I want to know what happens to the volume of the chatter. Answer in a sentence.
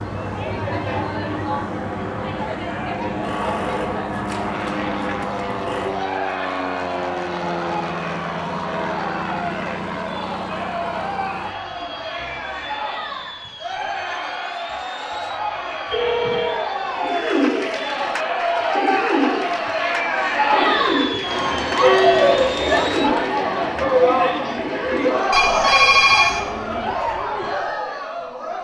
The loudness of the chatter goes up.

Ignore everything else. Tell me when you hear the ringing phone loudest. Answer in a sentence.
The volume of the ringing phone peaks at 26 seconds.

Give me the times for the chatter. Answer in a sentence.
You can hear the chatter from 0.0 to 28.5 s.